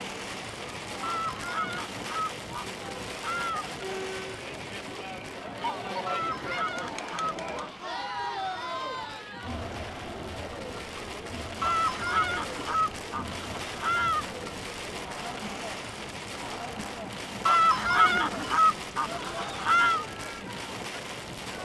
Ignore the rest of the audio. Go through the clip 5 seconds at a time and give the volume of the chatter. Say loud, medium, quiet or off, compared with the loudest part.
medium, loud, medium, medium, medium.